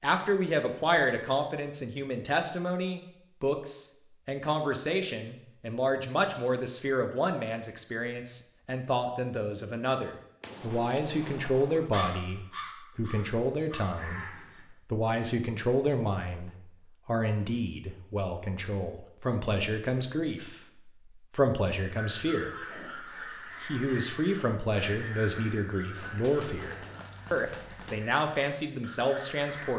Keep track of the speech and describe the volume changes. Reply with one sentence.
The volume of the speech stays about the same.